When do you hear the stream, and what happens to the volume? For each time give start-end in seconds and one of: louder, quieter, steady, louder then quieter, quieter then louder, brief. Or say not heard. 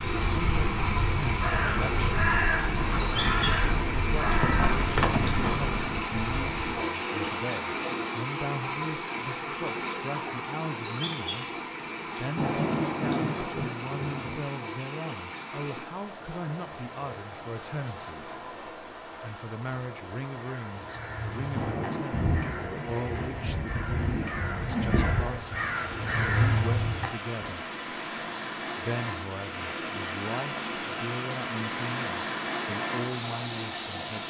0.0-34.2 quieter then louder.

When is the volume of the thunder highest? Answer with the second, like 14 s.
13 s.